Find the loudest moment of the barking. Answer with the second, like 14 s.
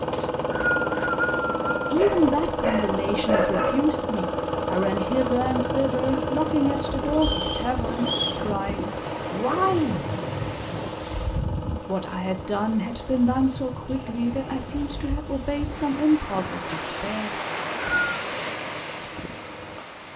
3 s.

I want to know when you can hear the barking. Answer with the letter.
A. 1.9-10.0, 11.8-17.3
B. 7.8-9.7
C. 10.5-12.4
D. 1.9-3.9
D.